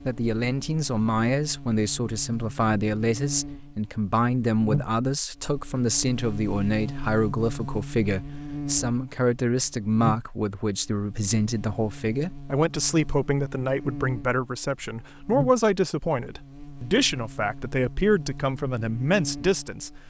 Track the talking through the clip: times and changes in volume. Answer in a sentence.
The talking can be heard from 0.0 to 19.9 s, at a steady volume.